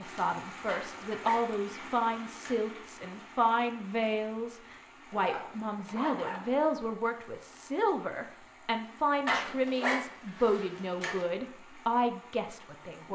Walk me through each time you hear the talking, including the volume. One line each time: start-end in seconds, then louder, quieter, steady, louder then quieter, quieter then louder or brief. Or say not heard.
0.0-13.1 steady.